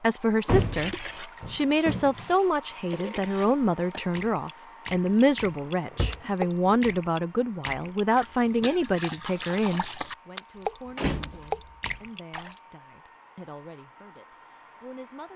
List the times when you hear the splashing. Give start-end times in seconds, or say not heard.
0.6-12.6.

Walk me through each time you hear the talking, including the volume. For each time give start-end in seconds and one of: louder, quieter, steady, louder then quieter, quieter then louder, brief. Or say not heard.
0.0-15.3 quieter.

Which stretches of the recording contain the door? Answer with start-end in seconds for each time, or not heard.
0.5-2.2, 5.5-6.8, 10.9-11.6.